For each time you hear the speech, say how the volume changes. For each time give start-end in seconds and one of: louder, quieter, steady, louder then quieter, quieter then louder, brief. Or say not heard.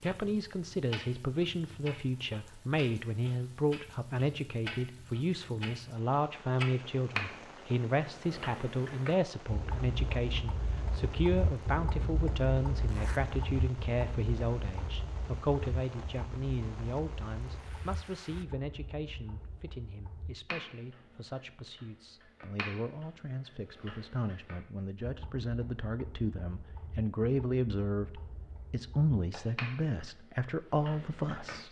0.0-31.6 quieter then louder.